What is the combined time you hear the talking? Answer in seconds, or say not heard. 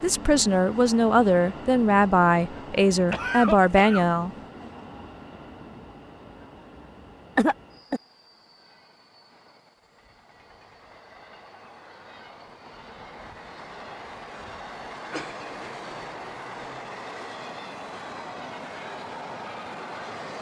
4 s.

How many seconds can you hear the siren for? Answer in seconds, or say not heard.
not heard.